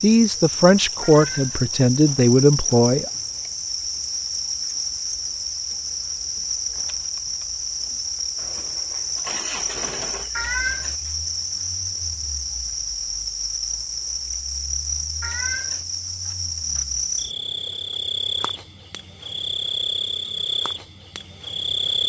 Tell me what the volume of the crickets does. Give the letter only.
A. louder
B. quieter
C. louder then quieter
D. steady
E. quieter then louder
D.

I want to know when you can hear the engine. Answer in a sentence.
The engine can be heard from 8.3 to 10.3 s.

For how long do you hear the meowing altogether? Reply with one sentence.
The meowing can be heard for 2 seconds in total.